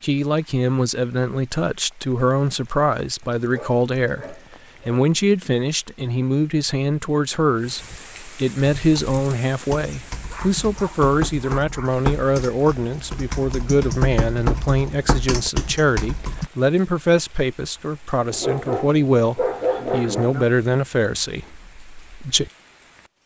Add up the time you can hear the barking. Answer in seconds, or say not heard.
6 s.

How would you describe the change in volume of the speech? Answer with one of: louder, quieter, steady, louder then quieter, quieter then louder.
steady.